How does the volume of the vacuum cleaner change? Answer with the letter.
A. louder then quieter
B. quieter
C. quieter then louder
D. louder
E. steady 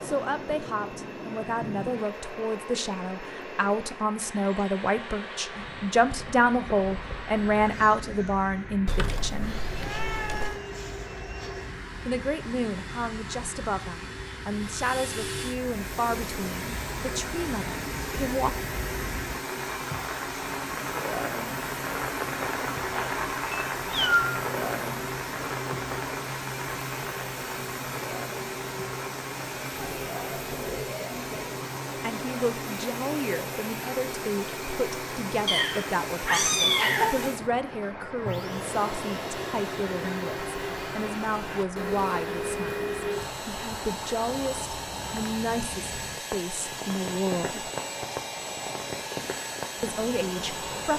D.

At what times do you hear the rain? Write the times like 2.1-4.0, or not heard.
0.0-50.9.